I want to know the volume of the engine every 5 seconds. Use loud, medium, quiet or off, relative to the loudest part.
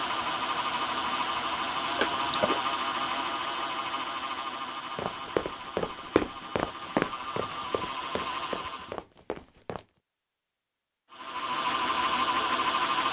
loud, medium, loud.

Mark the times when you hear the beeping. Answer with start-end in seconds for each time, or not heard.
1.9-2.6.